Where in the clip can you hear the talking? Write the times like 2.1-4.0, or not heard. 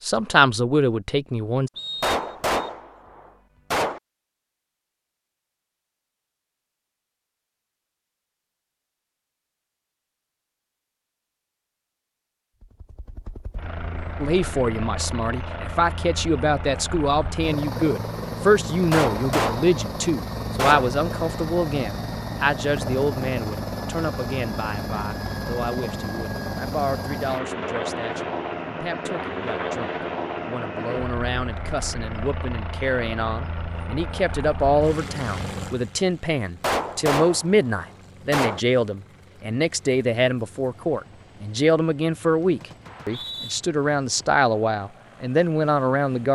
0.1-1.7, 14.2-46.3.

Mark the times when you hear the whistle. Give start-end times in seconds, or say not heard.
1.8-2.5, 42.9-43.6.